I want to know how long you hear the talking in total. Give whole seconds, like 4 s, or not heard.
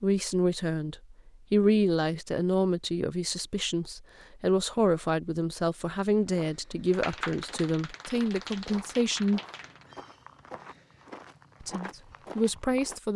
11 s.